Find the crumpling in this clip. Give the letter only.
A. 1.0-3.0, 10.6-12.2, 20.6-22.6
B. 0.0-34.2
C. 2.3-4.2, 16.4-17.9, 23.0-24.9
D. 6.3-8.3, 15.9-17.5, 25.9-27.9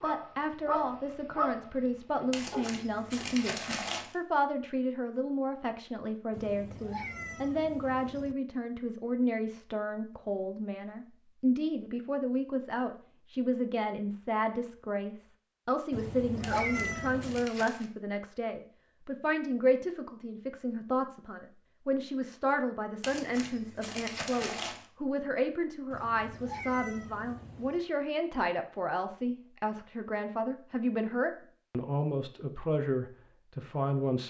C.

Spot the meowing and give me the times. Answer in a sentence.
You can hear the meowing from 6.3 to 8.3 s, from 15.9 to 17.5 s and from 25.9 to 27.9 s.